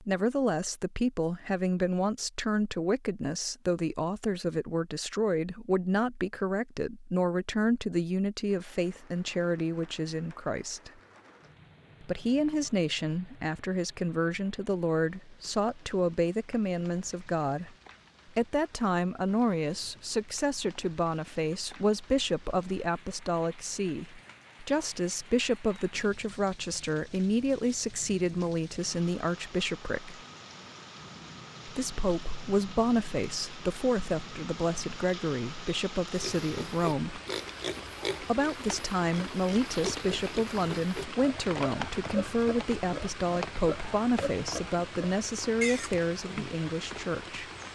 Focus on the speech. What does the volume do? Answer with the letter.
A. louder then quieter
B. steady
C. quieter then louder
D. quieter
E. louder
B.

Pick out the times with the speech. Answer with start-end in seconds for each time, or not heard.
0.0-10.9, 12.0-17.7, 18.4-30.2, 31.6-37.2, 38.2-47.7.